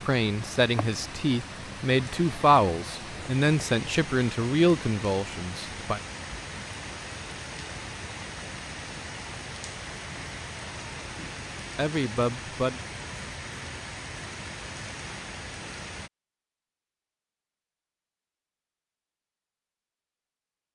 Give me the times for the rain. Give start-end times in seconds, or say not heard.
0.0-16.1.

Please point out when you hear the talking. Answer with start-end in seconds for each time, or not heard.
0.1-6.0, 11.2-12.8.